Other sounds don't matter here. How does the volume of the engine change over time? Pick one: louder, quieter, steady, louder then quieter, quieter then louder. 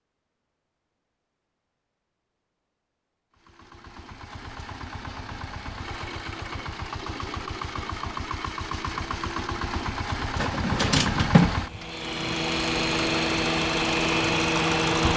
louder.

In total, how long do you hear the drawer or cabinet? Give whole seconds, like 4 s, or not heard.
2 s.